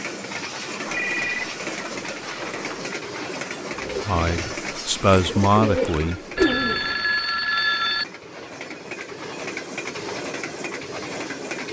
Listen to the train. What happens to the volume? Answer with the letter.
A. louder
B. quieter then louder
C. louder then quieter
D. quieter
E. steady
B.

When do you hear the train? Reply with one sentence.
The train can be heard from 0.0 to 11.6 s.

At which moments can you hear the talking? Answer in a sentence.
You can hear the talking from 4.0 to 6.5 s.